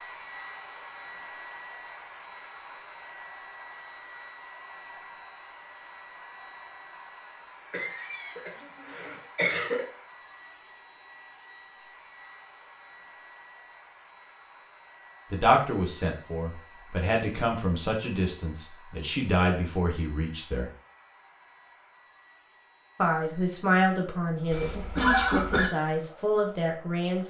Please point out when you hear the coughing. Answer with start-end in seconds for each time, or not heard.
7.7-9.8, 24.5-25.7.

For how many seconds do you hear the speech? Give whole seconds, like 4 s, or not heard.
10 s.